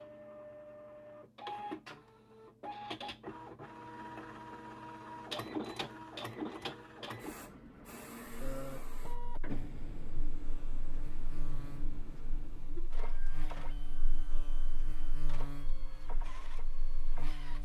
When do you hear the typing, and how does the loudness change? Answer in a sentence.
The typing can't be heard in this clip.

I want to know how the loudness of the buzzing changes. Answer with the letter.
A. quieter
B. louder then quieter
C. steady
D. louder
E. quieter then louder
B.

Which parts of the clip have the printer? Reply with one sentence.
The printer can be heard from 0.0 to 17.6 s.